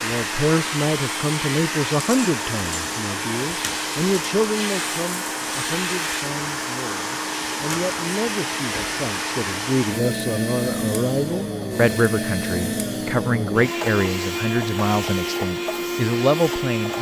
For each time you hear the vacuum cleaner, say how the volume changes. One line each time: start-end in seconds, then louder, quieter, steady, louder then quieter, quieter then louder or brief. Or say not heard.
0.0-16.9 steady.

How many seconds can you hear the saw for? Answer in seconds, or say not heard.
not heard.